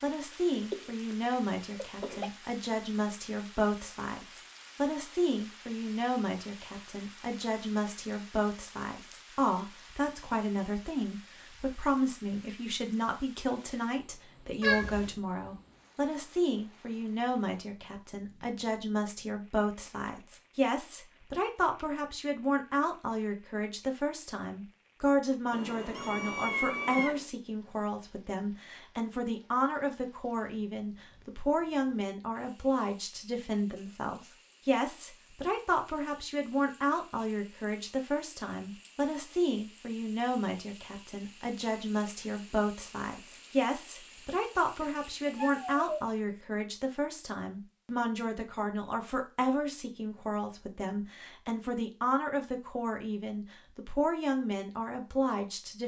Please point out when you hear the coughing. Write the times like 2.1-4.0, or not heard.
0.3-2.3.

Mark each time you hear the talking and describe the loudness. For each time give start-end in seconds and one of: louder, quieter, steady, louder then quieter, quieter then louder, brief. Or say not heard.
0.0-55.8 steady.